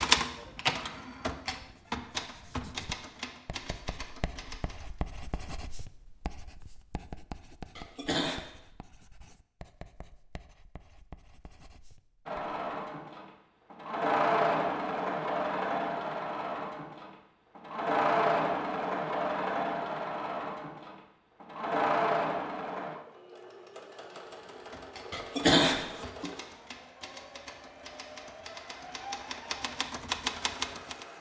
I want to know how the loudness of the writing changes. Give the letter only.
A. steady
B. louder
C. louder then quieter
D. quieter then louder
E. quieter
C.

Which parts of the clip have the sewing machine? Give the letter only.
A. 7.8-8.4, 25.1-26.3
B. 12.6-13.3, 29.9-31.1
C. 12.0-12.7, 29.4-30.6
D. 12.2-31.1
D.